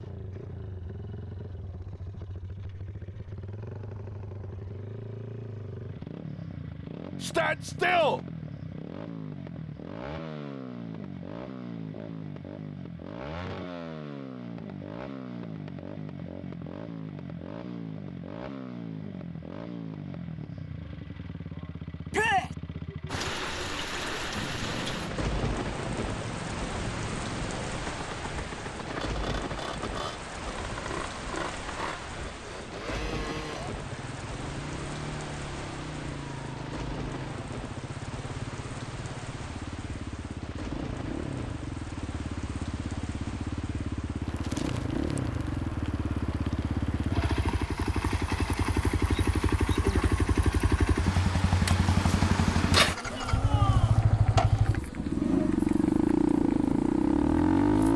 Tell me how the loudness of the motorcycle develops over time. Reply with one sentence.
The loudness of the motorcycle goes up.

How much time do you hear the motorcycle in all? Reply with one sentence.
You can hear the motorcycle for 58 seconds altogether.